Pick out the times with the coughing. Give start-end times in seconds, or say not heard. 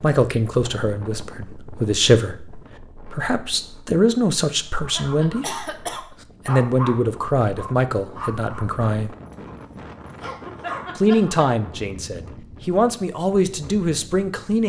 5.4-6.2.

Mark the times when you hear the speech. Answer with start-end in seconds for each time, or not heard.
0.0-5.7, 6.5-9.2, 10.9-14.6.